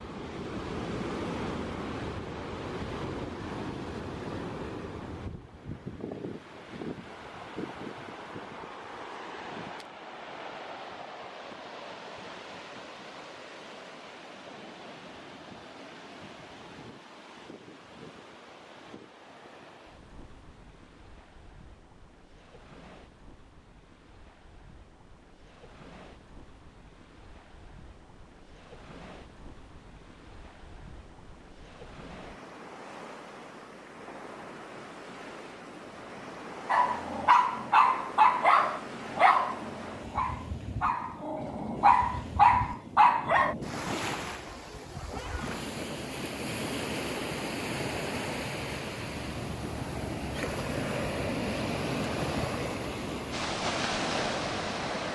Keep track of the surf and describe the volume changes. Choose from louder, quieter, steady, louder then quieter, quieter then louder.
quieter then louder.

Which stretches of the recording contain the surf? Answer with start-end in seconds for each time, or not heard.
0.0-55.0.